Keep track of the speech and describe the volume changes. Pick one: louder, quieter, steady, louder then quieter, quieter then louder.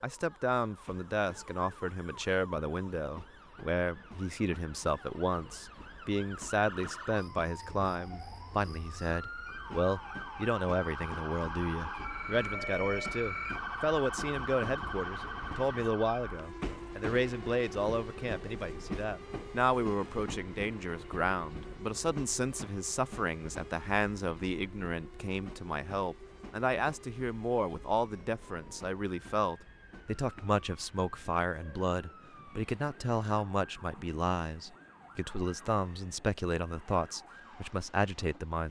steady.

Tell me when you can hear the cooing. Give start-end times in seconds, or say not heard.
not heard.